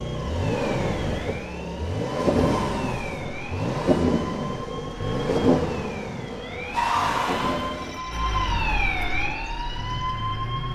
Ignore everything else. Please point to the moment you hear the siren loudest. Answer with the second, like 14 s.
7 s.